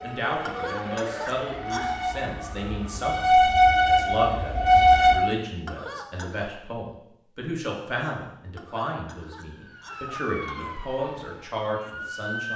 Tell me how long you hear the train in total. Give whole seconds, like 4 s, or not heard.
5 s.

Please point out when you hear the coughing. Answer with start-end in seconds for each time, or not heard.
0.5-1.9, 5.7-6.5, 8.6-10.8.